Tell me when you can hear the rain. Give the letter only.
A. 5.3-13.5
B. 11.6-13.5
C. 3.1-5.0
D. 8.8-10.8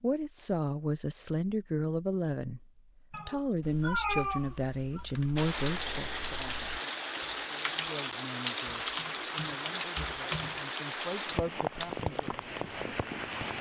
A.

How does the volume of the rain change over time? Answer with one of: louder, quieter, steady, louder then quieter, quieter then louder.
steady.